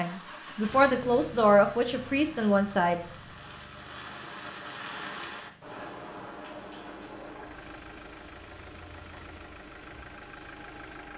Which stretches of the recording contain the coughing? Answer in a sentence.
You can't hear the coughing here.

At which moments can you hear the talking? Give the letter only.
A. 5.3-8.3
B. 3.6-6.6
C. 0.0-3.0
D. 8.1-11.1
C.